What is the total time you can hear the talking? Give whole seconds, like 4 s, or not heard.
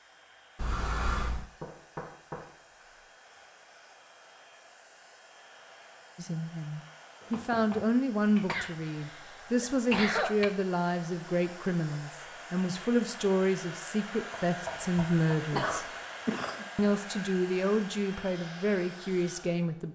13 s.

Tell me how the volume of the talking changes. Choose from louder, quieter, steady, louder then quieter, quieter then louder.
steady.